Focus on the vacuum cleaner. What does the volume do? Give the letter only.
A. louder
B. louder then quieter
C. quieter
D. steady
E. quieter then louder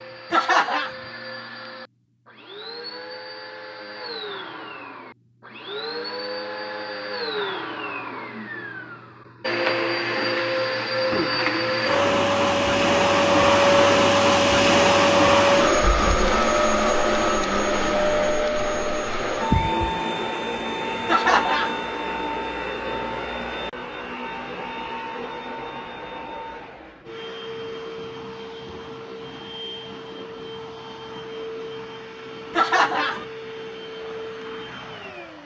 B.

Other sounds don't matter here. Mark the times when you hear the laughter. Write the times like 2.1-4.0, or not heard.
0.3-0.9, 21.1-21.8, 32.5-33.2.